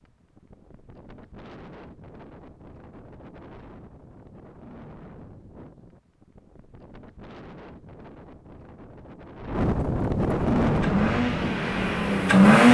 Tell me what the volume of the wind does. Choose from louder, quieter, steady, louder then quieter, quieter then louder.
louder.